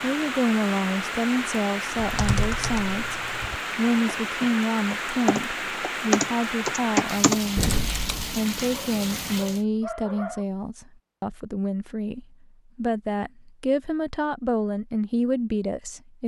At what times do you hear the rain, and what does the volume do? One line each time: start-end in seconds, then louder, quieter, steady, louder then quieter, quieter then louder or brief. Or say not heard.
0.0-9.7 steady.